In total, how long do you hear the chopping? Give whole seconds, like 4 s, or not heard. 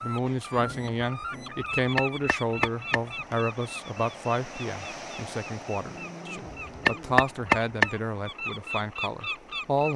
3 s.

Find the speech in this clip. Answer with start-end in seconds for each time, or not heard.
0.0-9.9.